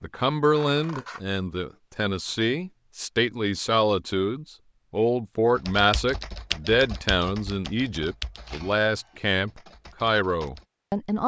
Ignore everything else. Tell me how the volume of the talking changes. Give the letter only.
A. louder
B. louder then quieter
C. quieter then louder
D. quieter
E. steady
E.